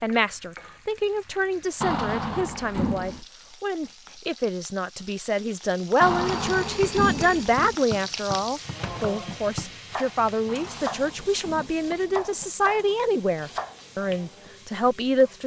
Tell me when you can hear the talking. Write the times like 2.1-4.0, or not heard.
0.0-15.4.